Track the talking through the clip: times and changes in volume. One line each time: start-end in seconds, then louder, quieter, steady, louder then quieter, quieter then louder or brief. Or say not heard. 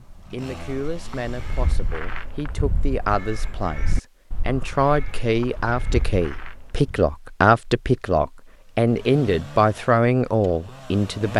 0.0-11.3 louder.